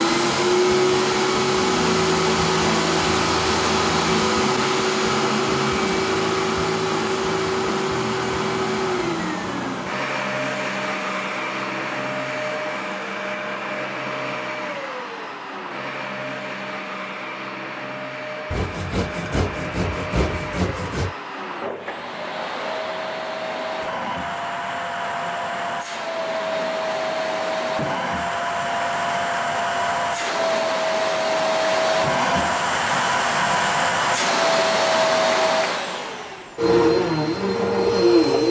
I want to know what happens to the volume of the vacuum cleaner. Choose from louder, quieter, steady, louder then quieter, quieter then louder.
quieter then louder.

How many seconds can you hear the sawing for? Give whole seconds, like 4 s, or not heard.
3 s.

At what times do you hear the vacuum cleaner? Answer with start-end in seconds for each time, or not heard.
0.0-38.4.